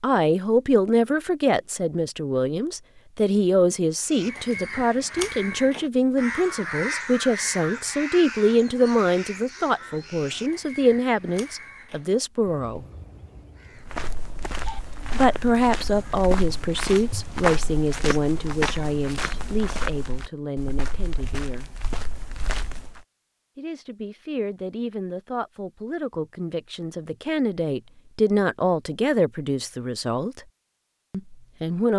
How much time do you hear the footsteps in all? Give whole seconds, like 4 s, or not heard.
9 s.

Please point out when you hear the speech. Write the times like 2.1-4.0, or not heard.
0.0-12.8, 15.1-21.7, 23.6-30.4, 31.1-31.9.